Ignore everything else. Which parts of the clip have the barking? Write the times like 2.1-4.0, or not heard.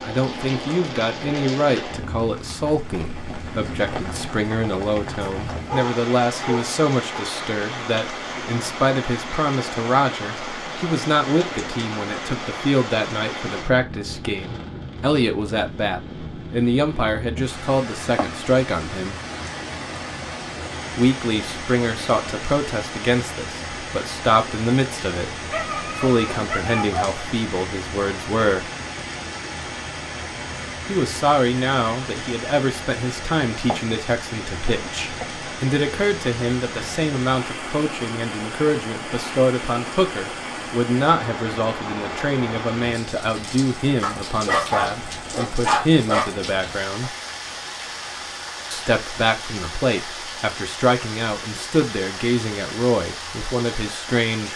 5.2-7.2, 25.5-27.2, 44.0-46.4.